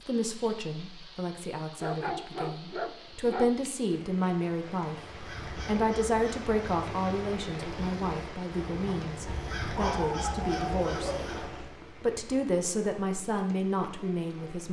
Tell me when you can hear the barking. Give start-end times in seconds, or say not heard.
1.8-3.5, 9.2-11.3.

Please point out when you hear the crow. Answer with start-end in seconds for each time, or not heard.
5.0-11.8.